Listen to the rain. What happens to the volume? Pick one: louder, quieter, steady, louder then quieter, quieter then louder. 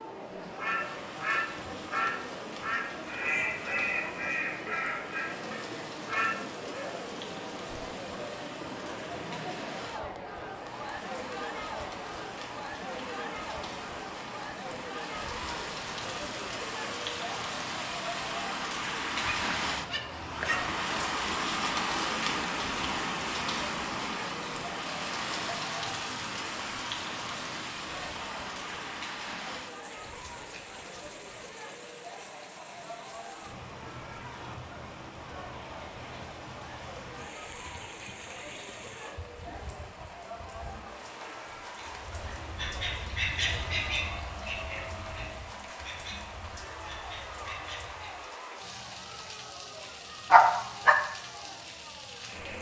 louder then quieter.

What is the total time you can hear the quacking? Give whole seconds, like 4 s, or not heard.
13 s.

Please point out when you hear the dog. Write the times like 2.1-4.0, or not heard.
19.2-20.7, 50.3-51.0.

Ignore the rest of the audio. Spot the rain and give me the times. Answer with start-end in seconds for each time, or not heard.
0.0-52.5.